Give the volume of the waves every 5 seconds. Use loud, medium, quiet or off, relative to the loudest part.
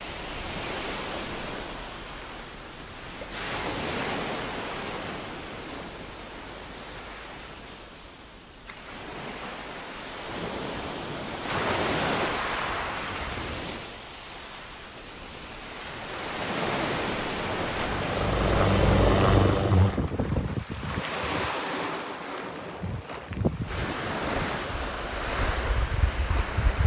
loud, medium, loud, loud, loud, loud.